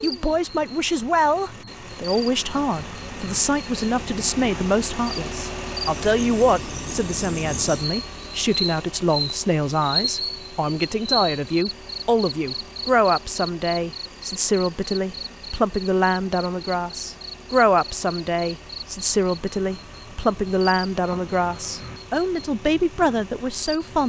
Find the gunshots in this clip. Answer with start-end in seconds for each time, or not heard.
not heard.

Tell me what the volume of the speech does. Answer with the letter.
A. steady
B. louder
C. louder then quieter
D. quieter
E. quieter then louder
A.